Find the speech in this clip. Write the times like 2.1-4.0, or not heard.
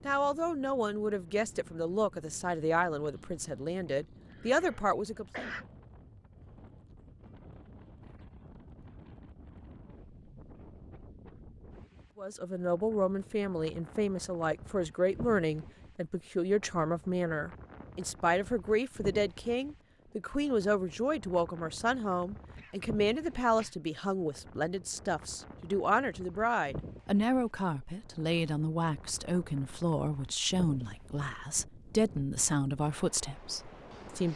0.1-5.5, 12.2-34.3.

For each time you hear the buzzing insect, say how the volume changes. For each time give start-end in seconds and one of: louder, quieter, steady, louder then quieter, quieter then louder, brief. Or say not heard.
not heard.